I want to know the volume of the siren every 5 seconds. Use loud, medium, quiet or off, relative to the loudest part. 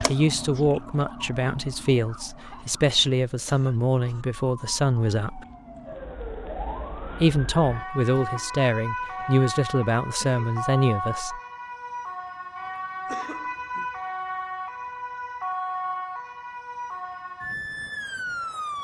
medium, loud, loud, loud.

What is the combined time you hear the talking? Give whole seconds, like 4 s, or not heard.
10 s.